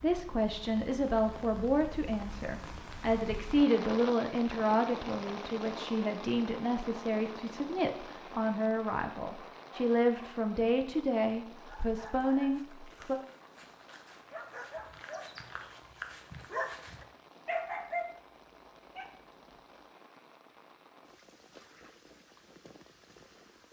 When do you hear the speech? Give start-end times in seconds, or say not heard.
0.0-13.2.